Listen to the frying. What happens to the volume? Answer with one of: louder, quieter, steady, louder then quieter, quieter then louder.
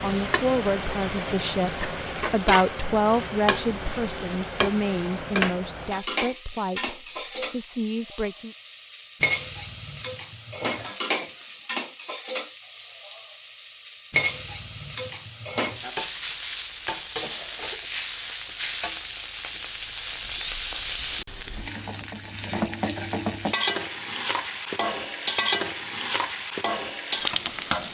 steady.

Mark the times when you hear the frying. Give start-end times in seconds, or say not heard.
0.0-27.8.